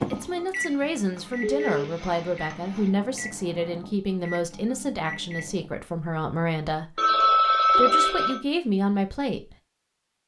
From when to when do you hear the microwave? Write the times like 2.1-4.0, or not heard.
0.0-5.7.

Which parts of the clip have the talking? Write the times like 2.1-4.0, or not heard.
0.1-9.6.